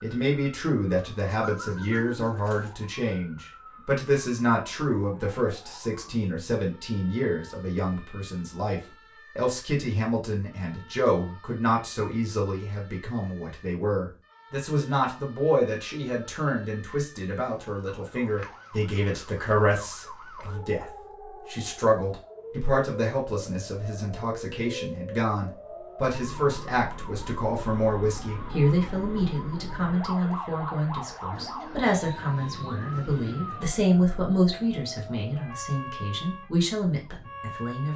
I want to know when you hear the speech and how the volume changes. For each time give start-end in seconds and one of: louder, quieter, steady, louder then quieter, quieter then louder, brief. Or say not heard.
0.0-37.9 steady.